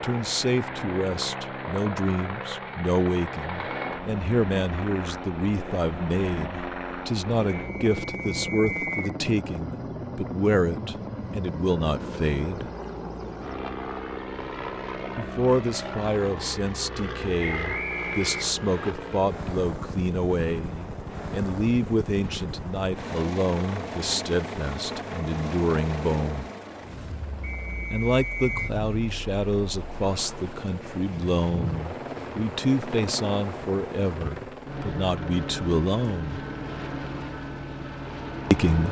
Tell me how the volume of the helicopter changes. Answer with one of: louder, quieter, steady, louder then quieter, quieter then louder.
steady.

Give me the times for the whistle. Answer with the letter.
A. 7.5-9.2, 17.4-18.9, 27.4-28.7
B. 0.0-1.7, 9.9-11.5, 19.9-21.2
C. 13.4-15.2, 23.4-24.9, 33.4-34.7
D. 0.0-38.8
A.